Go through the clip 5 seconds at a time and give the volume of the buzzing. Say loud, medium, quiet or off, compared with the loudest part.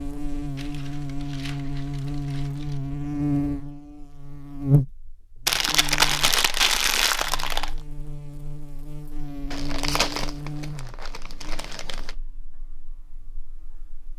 loud, medium, quiet.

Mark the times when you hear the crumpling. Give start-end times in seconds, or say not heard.
0.6-2.8, 5.5-7.7, 9.5-12.1.